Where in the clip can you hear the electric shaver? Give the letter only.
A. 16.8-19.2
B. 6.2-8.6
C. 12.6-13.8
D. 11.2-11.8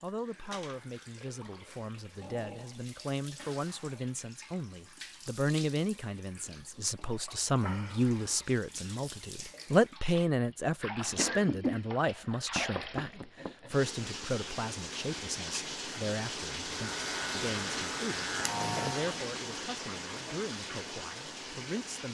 A.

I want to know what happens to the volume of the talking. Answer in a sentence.
The volume of the talking goes up, then down.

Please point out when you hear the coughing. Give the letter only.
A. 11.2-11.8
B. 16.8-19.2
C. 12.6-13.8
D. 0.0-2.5
A.